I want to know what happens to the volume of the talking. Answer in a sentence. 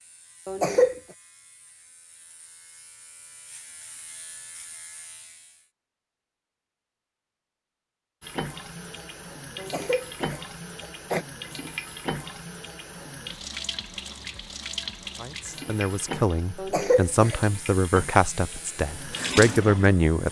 The volume of the talking goes up.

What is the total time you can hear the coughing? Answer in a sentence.
The coughing can be heard for 3 seconds in total.